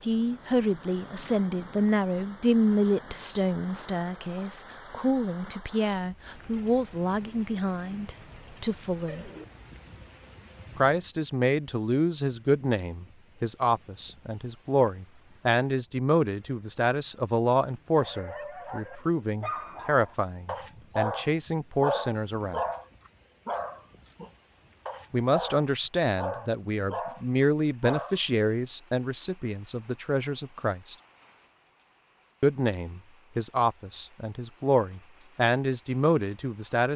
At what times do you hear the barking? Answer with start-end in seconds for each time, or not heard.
17.9-28.2.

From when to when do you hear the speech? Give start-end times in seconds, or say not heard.
0.0-9.3, 10.8-22.6, 25.1-30.9, 32.4-36.9.